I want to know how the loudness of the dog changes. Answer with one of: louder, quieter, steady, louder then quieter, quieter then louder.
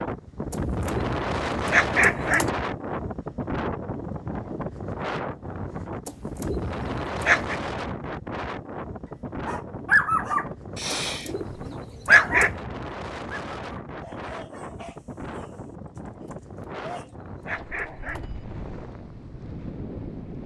quieter then louder.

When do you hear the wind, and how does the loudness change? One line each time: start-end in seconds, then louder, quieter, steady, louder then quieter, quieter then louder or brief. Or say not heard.
0.0-20.4 quieter.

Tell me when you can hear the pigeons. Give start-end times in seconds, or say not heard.
0.5-2.5, 6.0-7.6, 10.9-12.6, 16.2-18.2.